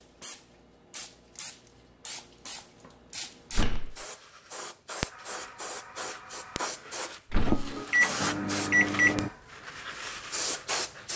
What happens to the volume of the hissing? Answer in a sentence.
The loudness of the hissing goes up.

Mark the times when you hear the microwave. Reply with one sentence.
The microwave can be heard from 7.5 to 9.3 s.